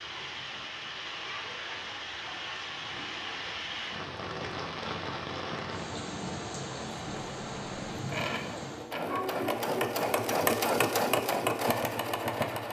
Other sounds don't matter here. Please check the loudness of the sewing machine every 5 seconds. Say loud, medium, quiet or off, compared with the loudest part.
off, medium, loud.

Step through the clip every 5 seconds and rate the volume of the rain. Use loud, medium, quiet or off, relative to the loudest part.
loud, loud, off.